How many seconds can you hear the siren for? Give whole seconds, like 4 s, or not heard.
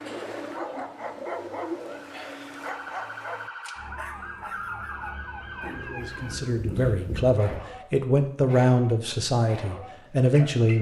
5 s.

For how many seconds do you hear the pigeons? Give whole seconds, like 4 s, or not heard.
4 s.